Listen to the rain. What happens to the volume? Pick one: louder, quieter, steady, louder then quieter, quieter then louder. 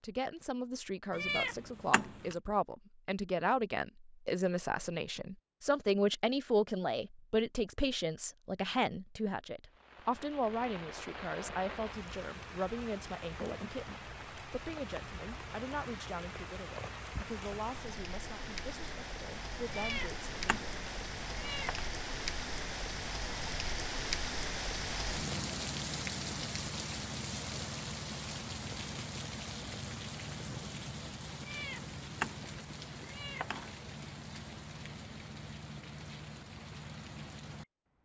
louder then quieter.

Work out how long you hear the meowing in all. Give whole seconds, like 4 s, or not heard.
6 s.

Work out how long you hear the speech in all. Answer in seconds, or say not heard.
21 s.